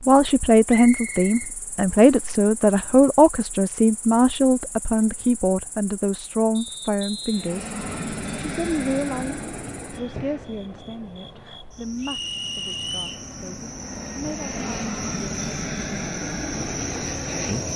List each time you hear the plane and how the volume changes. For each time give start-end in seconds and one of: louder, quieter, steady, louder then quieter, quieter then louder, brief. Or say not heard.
7.3-17.7 quieter then louder.